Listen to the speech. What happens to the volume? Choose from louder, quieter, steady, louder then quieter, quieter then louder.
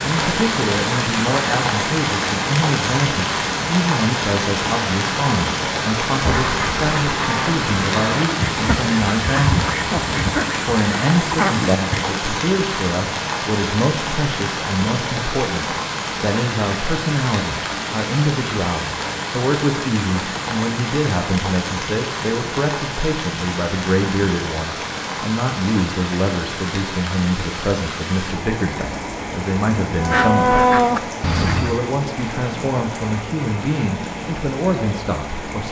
steady.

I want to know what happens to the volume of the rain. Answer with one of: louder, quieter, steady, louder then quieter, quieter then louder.
quieter.